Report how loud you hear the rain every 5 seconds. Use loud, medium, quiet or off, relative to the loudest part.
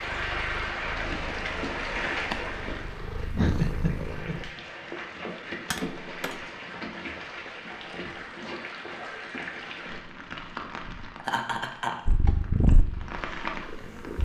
loud, loud, medium.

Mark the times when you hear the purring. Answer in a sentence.
The purring can be heard from 0.0 to 4.5 s and from 12.1 to 14.2 s.